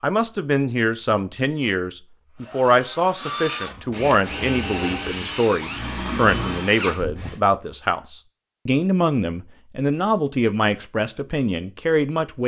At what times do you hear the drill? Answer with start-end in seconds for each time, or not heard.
2.4-7.4.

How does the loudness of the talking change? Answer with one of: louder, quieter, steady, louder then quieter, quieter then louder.
steady.